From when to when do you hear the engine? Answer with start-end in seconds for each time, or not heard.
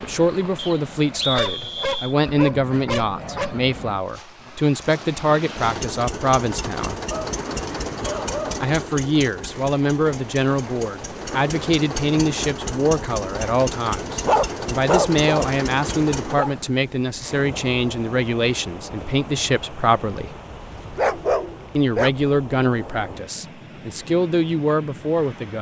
5.5-16.4.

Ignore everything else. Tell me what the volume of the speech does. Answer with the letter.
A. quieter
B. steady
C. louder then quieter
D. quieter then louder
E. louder
B.